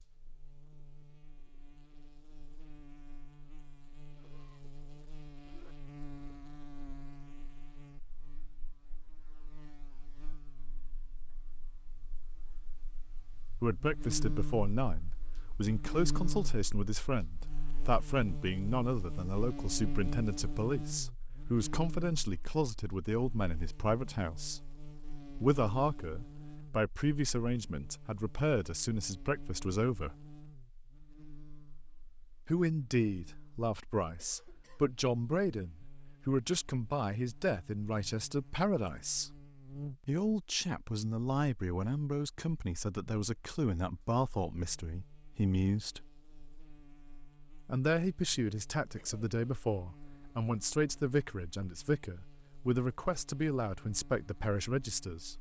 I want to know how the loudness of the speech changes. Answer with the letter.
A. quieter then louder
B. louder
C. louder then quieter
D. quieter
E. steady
E.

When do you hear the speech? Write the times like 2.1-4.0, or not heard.
13.6-24.6, 25.4-30.1, 32.5-39.3, 40.0-46.0, 47.6-55.3.